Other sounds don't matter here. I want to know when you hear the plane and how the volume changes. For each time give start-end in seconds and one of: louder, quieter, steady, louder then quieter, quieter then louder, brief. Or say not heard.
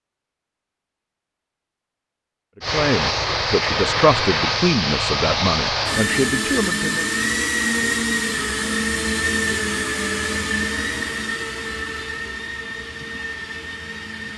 2.6-14.3 quieter.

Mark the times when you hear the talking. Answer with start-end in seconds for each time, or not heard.
2.7-7.0.